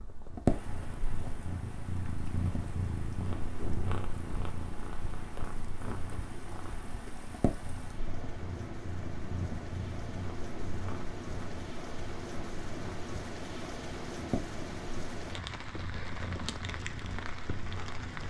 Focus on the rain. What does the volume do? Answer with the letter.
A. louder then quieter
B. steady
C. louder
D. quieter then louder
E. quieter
C.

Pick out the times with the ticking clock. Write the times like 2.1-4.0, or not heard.
not heard.